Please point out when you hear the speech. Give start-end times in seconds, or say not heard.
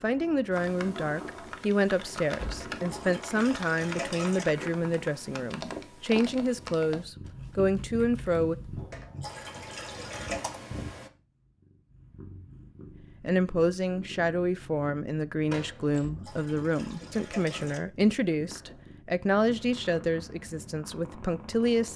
0.0-8.6, 13.2-21.9.